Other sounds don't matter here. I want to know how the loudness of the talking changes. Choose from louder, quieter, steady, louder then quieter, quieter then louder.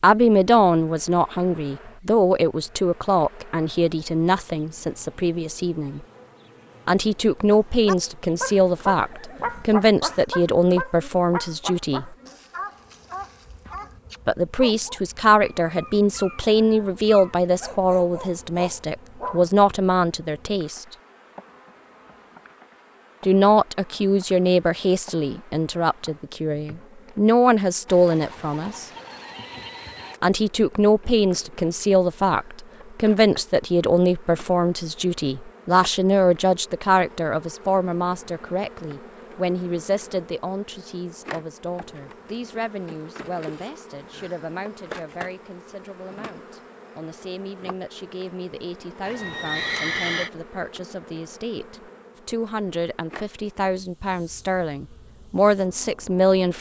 quieter.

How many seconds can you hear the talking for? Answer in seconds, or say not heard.
50 s.